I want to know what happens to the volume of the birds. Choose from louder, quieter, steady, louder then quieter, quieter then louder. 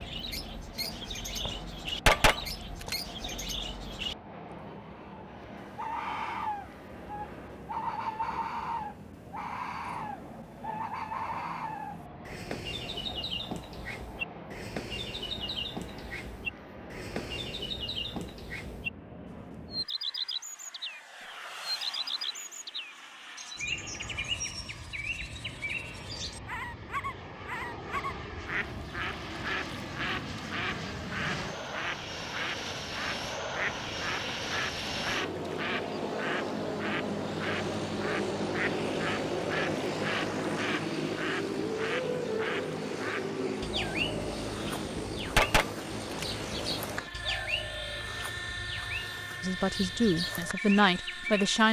steady.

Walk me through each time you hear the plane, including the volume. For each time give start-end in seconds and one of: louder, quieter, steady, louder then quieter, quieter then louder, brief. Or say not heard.
0.0-51.6 louder.